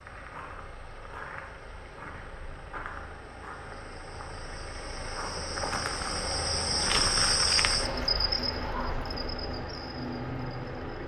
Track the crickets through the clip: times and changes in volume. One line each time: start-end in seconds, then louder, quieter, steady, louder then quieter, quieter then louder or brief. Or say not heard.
0.0-11.0 louder then quieter.